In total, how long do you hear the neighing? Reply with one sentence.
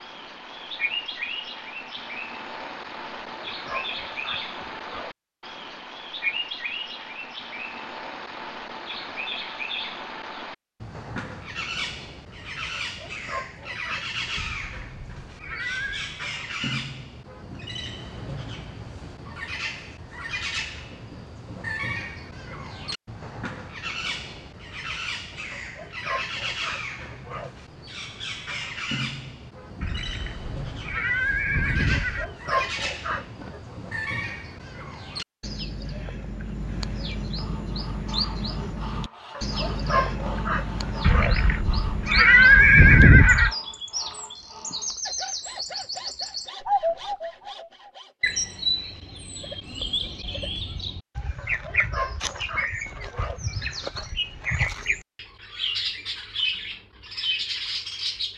You can hear the neighing for 7 seconds altogether.